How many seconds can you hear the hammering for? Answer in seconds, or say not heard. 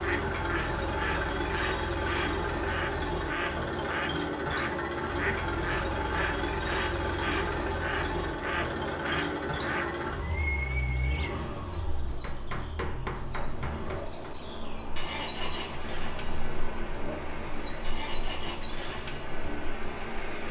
2 s.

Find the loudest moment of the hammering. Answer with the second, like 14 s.
13 s.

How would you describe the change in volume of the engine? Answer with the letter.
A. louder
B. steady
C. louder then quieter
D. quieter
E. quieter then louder
D.